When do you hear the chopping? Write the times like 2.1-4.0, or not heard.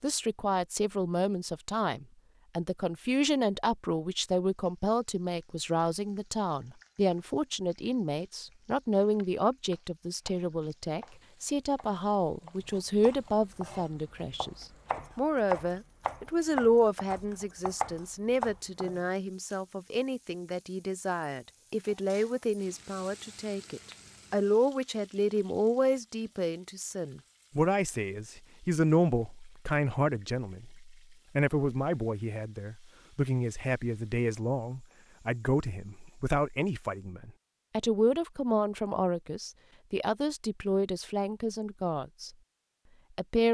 9.2-19.0.